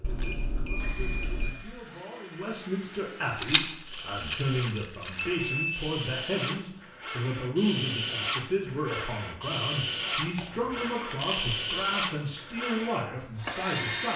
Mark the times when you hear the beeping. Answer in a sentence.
The beeping can be heard from 0.0 to 1.6 s, from 5.2 to 5.7 s and from 10.3 to 10.8 s.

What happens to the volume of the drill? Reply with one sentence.
The volume of the drill goes up.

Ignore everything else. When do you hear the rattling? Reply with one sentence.
The rattling can be heard from 3.4 to 5.2 s and from 11.1 to 11.8 s.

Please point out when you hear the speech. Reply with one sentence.
You can hear the speech from 0.0 to 14.1 s.